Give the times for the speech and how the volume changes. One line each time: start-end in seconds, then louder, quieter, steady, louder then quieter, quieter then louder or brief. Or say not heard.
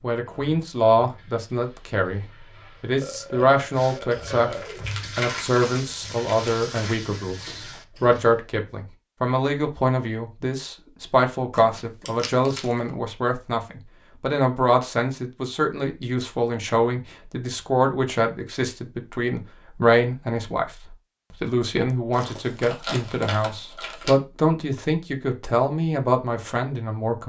0.0-27.2 steady.